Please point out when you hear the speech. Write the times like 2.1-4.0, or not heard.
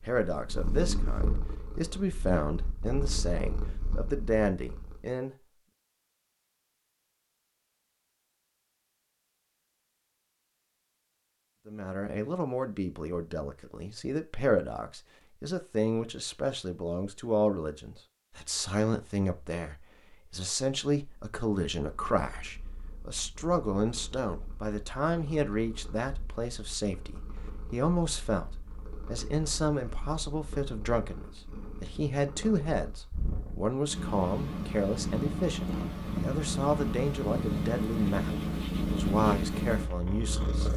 0.0-5.3, 11.7-40.7.